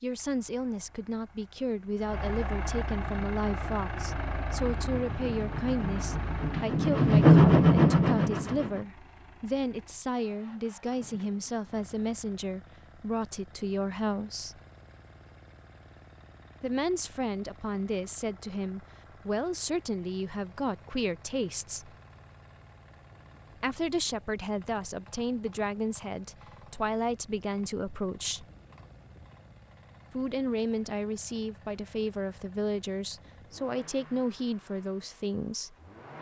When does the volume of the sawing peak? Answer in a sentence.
The loudest moment of the sawing is at 7 seconds.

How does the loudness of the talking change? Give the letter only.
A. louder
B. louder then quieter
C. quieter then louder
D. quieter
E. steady
E.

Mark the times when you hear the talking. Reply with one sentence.
The talking can be heard from 0.0 to 14.6 s, from 16.6 to 21.9 s, from 23.6 to 28.4 s and from 30.1 to 35.8 s.